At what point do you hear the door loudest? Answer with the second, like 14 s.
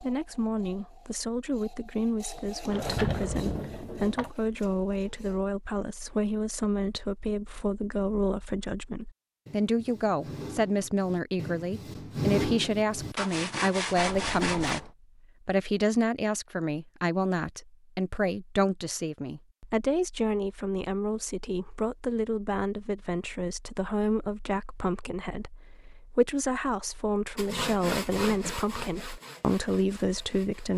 3 s.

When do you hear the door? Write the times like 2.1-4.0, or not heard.
2.7-4.3.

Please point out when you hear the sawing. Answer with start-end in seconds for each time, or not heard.
0.0-5.5, 9.4-14.8, 27.4-30.7.